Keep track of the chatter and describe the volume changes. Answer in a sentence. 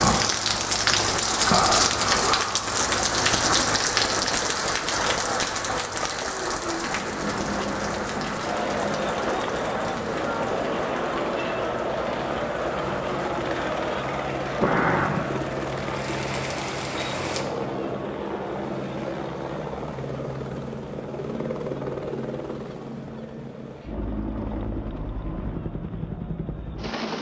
The volume of the chatter goes down.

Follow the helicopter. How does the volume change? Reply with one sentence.
The loudness of the helicopter stays about the same.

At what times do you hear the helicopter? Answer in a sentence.
The helicopter can be heard from 6.8 to 27.1 s.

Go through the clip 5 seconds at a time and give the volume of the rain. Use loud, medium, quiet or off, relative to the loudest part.
loud, medium, medium, medium, off, off.